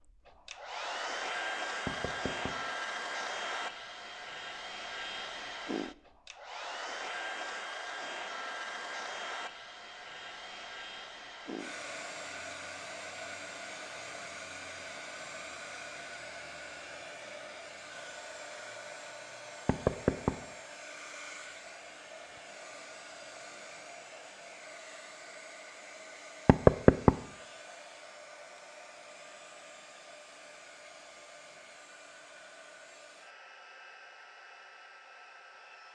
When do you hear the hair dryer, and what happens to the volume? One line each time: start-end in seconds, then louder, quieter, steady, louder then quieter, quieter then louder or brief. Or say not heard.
0.0-35.9 quieter.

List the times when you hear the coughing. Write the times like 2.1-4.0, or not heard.
not heard.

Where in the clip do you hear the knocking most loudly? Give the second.
27 s.